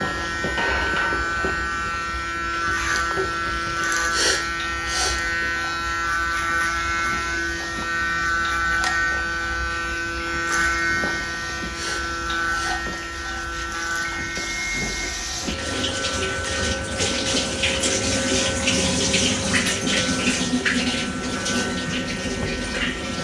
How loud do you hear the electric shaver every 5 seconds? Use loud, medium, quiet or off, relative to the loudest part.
loud, loud, loud, medium, medium.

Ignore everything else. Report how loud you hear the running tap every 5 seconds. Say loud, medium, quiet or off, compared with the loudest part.
medium, quiet, medium, loud, loud.